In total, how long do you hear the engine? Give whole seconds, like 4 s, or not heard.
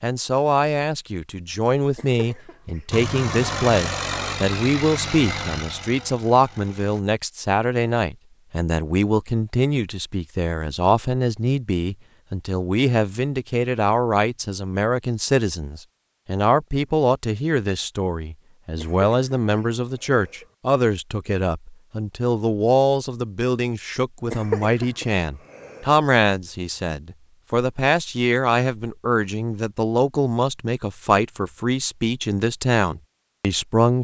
4 s.